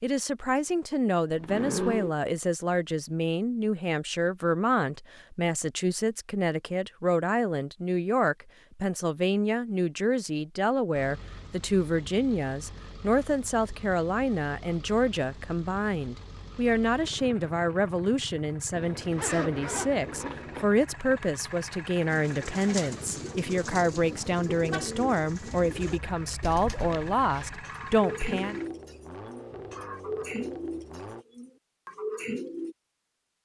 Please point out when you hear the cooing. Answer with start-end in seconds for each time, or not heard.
22.1-32.8.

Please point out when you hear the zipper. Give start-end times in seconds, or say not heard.
1.3-2.1, 18.7-20.6, 25.6-27.5.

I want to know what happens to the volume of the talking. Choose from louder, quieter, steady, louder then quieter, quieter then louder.
steady.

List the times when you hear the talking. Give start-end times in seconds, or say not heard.
0.0-28.6.